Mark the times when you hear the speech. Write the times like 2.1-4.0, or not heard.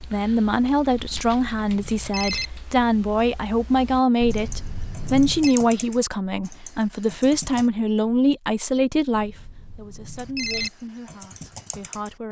0.0-12.2.